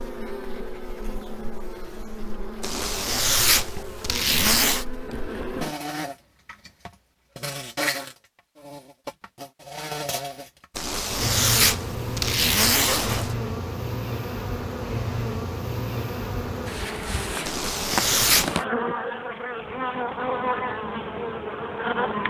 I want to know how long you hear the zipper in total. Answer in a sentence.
The zipper can be heard for 6 seconds in total.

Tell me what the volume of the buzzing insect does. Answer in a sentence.
The volume of the buzzing insect goes up.